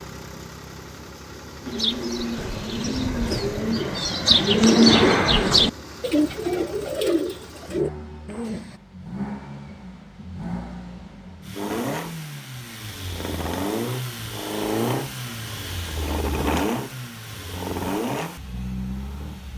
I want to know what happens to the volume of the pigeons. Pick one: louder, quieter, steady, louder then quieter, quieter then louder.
louder then quieter.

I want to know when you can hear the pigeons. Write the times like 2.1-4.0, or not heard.
1.6-8.8.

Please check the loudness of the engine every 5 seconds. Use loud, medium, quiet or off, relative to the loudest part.
medium, medium, loud, loud.